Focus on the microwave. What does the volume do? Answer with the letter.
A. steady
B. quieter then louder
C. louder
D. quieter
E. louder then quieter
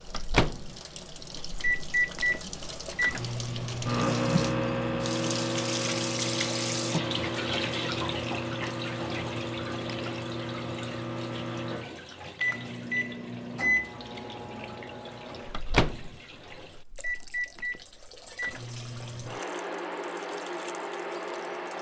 D.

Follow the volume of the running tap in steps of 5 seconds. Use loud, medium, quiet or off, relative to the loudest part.
medium, loud, medium, quiet, quiet.